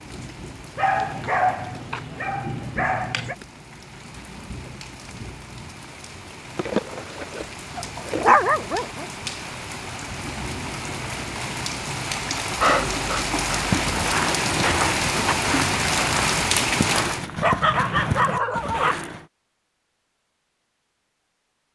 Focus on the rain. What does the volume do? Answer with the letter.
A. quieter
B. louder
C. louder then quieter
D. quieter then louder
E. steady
B.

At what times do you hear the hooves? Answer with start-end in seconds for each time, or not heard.
13.5-19.2.